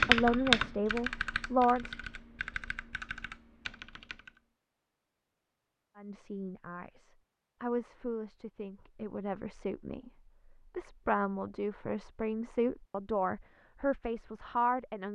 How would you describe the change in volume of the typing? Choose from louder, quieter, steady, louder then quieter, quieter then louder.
quieter.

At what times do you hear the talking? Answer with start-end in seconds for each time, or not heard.
0.1-1.9, 6.0-15.0.